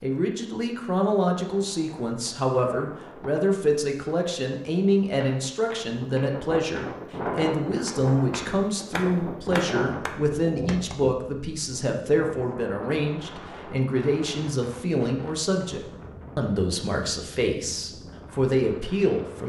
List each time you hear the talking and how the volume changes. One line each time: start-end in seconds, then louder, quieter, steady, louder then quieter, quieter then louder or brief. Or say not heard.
0.0-19.4 steady.